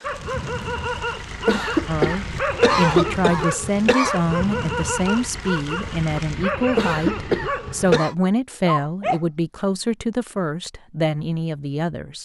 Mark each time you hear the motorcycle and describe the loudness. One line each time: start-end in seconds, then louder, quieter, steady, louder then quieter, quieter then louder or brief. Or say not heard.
not heard.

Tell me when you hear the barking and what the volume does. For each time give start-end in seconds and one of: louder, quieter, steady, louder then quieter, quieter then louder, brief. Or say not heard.
0.0-9.2 steady.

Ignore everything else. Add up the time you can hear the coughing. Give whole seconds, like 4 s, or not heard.
4 s.